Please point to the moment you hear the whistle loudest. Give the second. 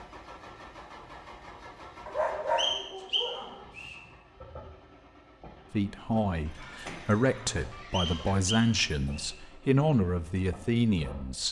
3 s.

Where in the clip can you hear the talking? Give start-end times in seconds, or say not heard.
5.7-11.4.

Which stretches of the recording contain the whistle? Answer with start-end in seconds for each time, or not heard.
2.5-4.0, 7.9-9.3.